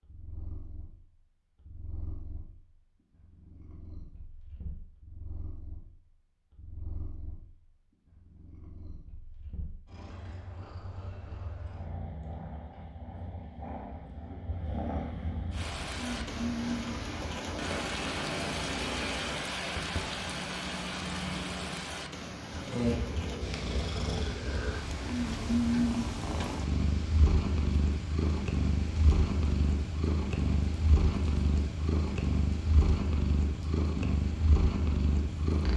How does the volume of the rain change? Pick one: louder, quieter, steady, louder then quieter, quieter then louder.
quieter.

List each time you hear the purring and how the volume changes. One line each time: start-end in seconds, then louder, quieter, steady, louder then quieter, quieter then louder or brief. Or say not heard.
0.0-35.7 louder.